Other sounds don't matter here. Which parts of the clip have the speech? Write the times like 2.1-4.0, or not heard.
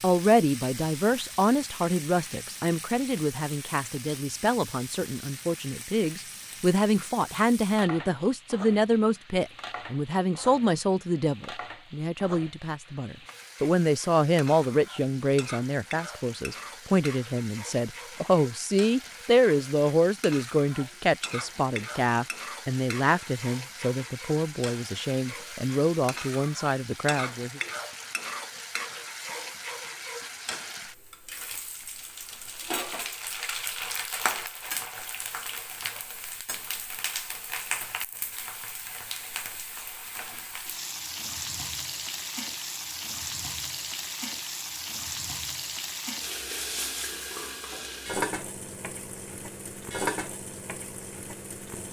0.0-27.6.